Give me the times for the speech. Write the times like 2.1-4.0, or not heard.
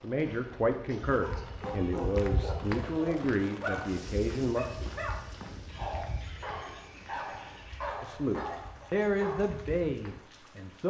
0.0-4.7, 8.0-10.8.